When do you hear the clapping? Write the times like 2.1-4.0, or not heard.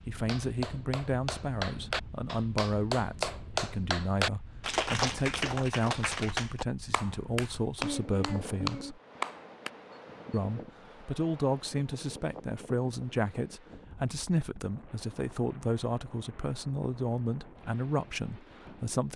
0.2-9.7.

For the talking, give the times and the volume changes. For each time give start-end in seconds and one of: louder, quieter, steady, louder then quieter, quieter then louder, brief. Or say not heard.
0.1-9.0 steady
10.3-19.1 steady.